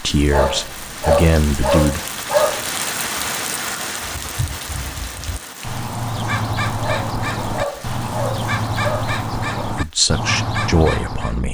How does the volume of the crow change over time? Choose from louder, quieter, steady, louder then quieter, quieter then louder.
louder.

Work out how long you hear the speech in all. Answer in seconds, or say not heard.
4 s.